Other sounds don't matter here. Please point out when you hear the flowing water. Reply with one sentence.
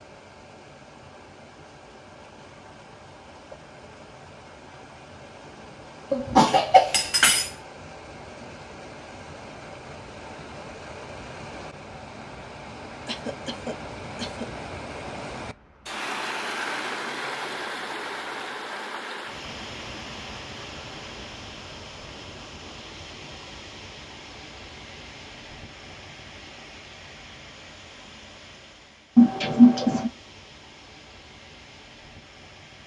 The flowing water can be heard from 0.0 to 32.8 s.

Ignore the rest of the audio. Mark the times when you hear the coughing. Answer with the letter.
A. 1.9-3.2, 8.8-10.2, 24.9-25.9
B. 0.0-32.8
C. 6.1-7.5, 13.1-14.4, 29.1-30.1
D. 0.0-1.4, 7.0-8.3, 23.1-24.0
C.